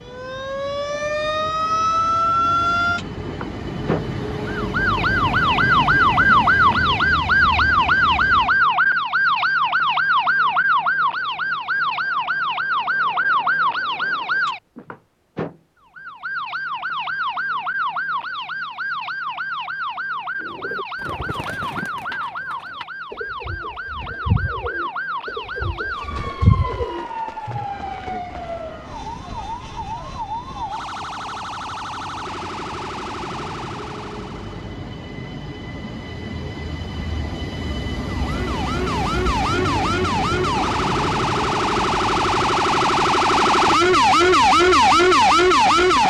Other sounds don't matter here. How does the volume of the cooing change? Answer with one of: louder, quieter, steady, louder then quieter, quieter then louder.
louder.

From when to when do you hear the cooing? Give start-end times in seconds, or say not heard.
20.4-27.6.